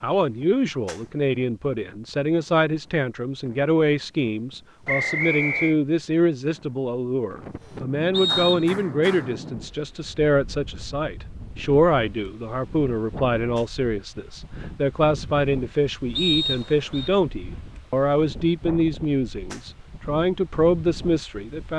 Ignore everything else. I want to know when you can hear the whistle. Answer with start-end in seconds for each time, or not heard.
4.8-5.8, 8.1-8.8, 16.1-17.1.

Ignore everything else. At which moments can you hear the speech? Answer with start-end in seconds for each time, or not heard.
0.0-21.7.